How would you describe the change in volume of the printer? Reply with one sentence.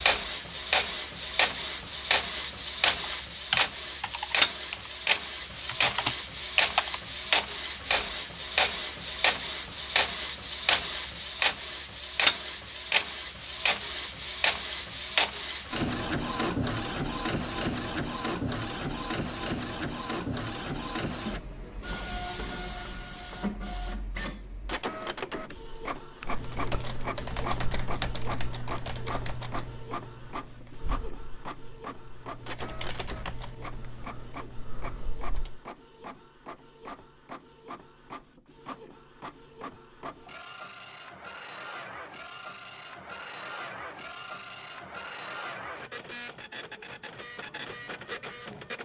The volume of the printer goes down.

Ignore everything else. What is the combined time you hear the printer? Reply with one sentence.
The printer can be heard for 49 seconds in total.